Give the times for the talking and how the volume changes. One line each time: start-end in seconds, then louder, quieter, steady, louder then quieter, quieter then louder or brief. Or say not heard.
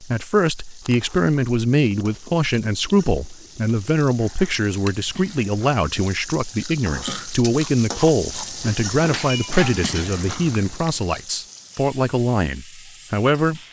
0.0-13.6 steady.